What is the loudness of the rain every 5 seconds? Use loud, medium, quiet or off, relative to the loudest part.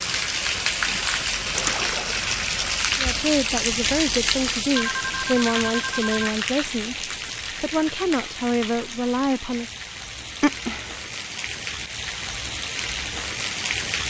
loud, medium, medium.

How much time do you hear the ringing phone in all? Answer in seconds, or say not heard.
3 s.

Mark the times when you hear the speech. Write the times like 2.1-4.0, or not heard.
3.0-9.7.